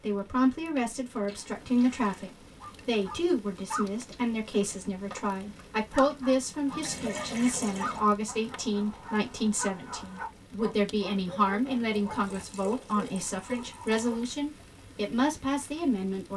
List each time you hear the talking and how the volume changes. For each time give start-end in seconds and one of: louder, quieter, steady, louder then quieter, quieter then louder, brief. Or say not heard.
0.0-16.3 steady.